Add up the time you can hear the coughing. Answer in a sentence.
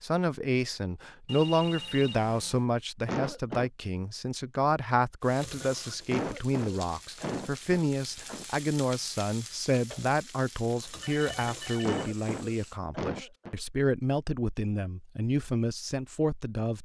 The coughing can be heard for 5 seconds in total.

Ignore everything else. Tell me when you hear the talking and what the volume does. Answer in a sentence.
The talking can be heard from 0.0 to 16.7 s, at a steady volume.